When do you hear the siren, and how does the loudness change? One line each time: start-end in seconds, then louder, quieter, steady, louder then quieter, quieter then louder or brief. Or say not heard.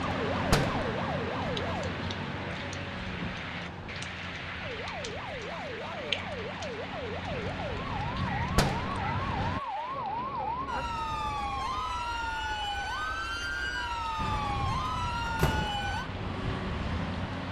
0.0-1.9 brief
4.6-16.1 louder.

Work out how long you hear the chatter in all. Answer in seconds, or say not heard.
not heard.